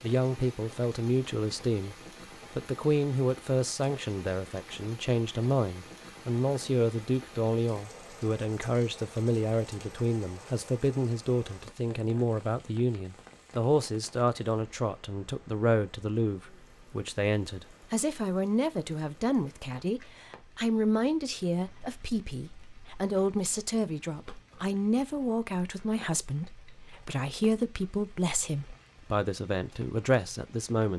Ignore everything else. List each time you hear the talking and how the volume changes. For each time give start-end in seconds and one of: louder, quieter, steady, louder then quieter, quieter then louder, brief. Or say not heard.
0.0-1.9 brief
2.5-30.9 steady.